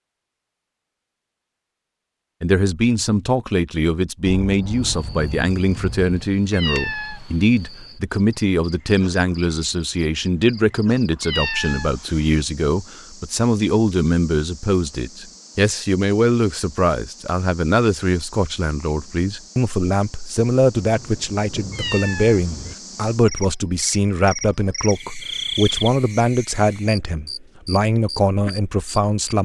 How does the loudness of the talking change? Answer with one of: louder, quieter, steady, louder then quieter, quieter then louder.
steady.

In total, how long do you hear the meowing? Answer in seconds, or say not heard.
3 s.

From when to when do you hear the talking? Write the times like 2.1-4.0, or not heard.
2.4-29.4.